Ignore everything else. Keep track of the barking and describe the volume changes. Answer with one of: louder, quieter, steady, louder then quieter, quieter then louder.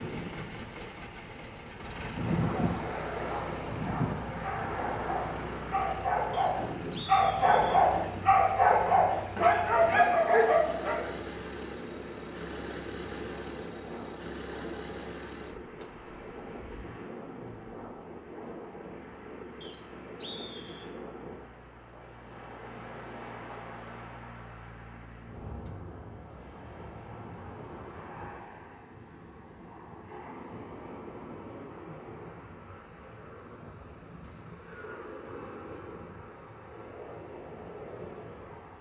louder.